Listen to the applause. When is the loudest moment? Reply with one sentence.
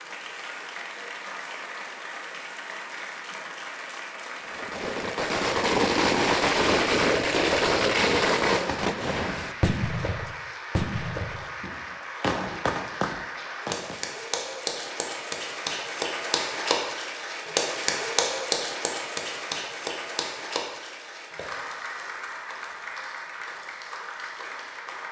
The loudest moment of the applause is at 18 seconds.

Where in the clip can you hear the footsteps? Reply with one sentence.
The footsteps can't be heard in this clip.